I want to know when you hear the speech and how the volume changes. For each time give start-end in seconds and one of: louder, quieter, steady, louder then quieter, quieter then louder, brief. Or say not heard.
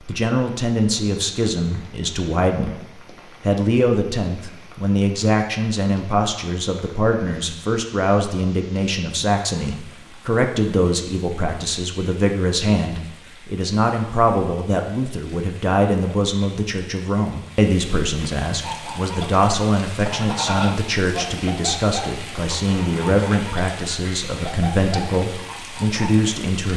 0.1-2.8 brief
3.4-26.7 steady.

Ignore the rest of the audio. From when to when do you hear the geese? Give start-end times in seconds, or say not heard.
18.6-26.2.